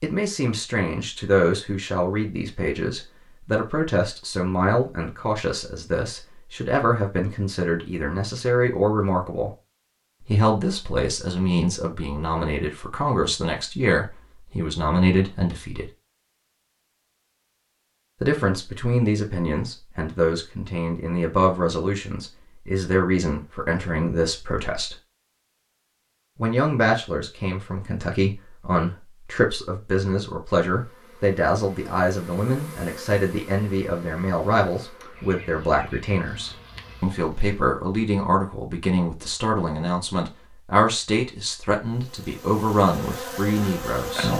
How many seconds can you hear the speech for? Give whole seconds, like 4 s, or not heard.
40 s.